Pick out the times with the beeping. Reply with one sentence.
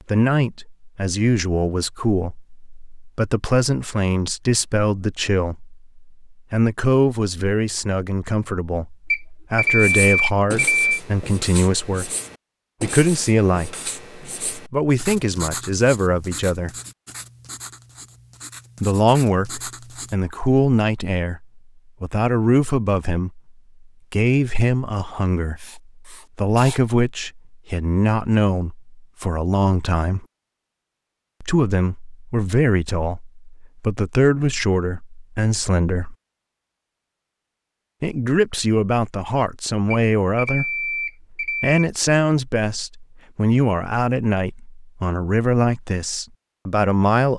The beeping can be heard from 9.1 to 10.9 s and from 39.9 to 41.8 s.